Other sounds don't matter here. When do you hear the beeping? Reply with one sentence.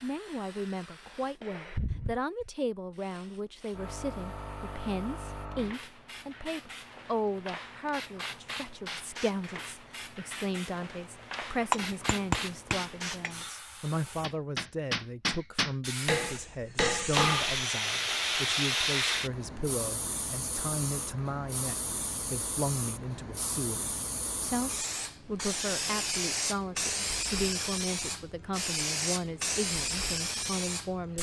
You can't hear the beeping here.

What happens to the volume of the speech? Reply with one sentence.
The volume of the speech stays about the same.